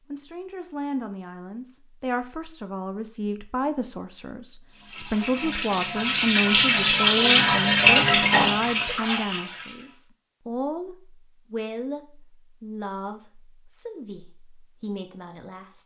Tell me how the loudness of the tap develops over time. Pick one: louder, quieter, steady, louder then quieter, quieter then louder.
louder then quieter.